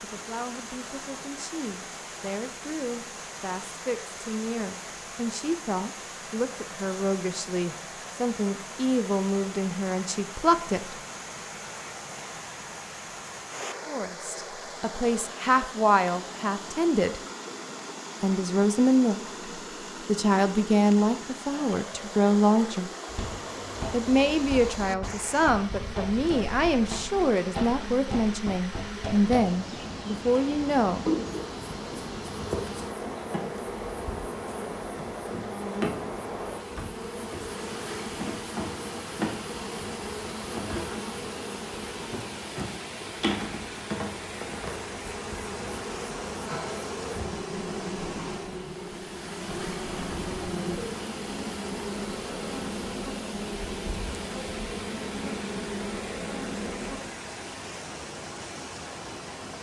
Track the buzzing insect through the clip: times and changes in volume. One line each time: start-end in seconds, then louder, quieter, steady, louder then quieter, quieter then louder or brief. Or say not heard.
23.1-57.0 steady.